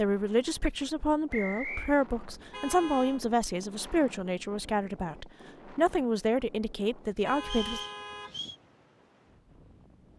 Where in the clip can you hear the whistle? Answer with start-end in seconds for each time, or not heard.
1.3-1.9, 7.4-8.6.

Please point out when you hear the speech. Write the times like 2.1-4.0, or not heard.
0.0-7.8.